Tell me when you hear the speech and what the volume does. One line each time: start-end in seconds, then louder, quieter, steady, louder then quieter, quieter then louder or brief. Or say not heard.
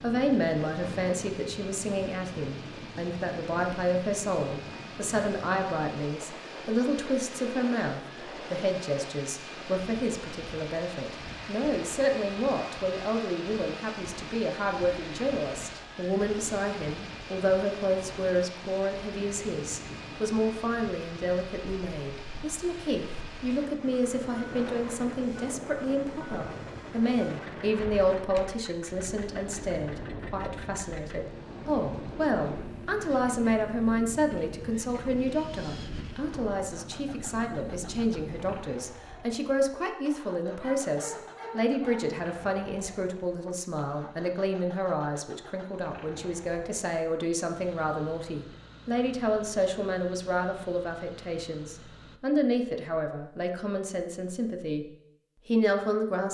0.0-54.9 steady
55.5-56.2 brief.